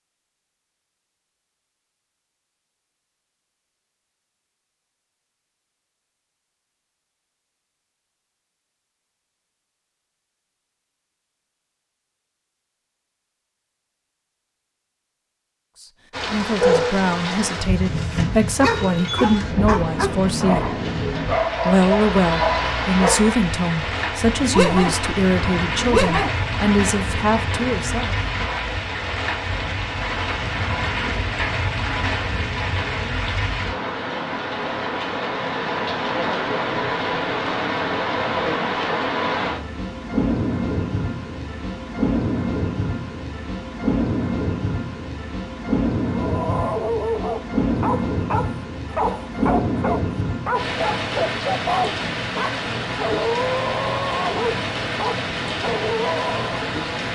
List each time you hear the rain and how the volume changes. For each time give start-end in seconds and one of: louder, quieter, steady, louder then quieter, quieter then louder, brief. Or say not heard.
16.1-57.1 steady.